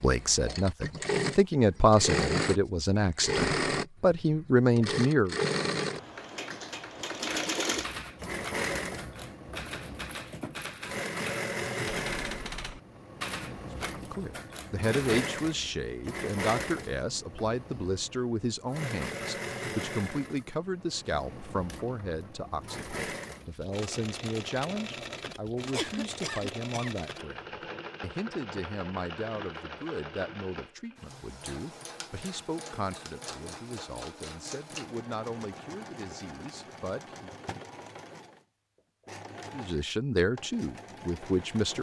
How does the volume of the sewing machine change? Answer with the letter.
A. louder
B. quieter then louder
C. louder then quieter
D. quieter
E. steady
D.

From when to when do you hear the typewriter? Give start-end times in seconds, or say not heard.
7.2-15.2.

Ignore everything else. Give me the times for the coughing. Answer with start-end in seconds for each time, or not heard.
25.1-26.9.